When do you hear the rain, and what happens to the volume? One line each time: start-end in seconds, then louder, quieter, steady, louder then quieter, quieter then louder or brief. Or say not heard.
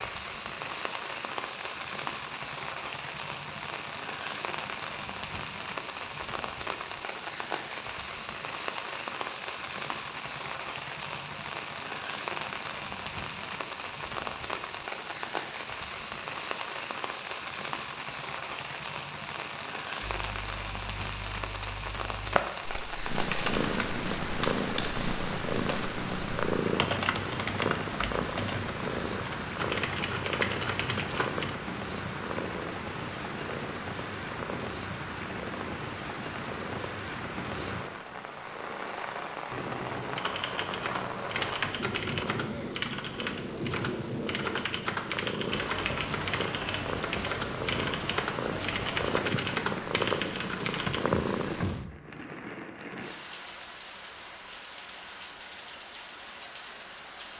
0.0-57.3 steady.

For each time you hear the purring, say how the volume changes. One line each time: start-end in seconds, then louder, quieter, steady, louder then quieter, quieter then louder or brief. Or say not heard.
22.9-51.9 quieter then louder.